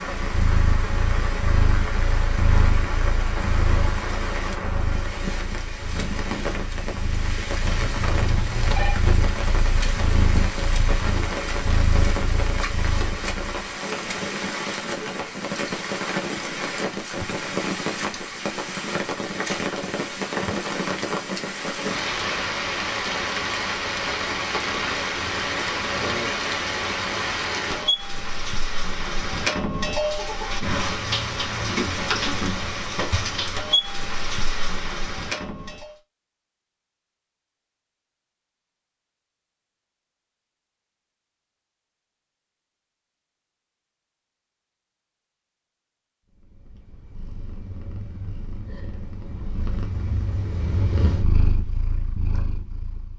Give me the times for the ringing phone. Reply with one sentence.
The ringing phone can be heard from 7.6 to 9.0 s.